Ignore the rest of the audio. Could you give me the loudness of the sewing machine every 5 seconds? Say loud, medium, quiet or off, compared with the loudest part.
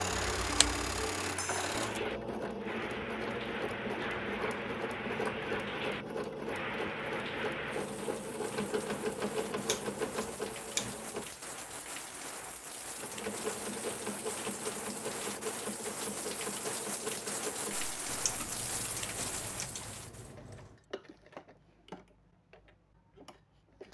loud, loud, loud, medium, quiet.